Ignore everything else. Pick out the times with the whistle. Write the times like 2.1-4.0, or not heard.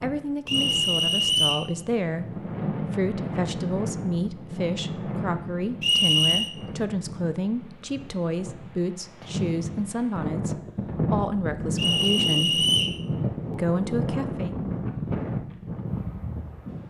0.5-1.6, 5.8-6.5, 11.8-13.0.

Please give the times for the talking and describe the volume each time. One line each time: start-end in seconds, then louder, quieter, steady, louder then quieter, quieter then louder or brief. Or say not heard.
0.0-12.7 steady
13.5-14.5 brief.